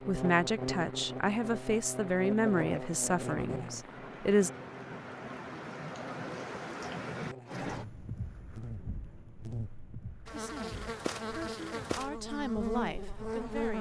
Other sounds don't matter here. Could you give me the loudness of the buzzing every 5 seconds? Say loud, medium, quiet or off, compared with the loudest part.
loud, medium, loud.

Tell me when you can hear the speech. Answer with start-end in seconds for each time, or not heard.
0.1-4.5, 10.3-13.7.